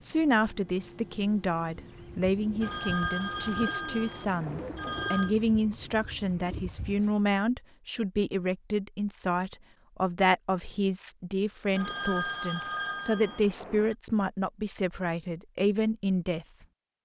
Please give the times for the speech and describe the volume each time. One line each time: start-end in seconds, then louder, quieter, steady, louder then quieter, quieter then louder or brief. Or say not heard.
0.0-16.4 steady.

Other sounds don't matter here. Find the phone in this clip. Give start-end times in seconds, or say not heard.
2.6-5.3, 11.7-13.9.